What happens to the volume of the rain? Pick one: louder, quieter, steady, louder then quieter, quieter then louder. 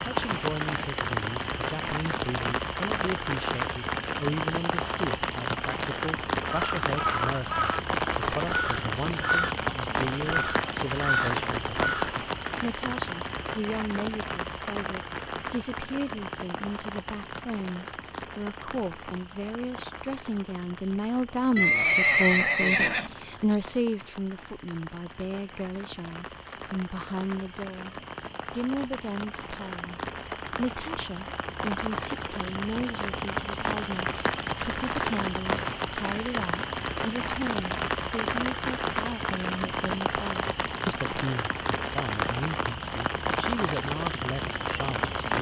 quieter then louder.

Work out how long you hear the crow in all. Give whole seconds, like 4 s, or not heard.
6 s.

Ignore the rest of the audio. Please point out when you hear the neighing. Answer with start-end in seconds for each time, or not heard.
21.6-23.6.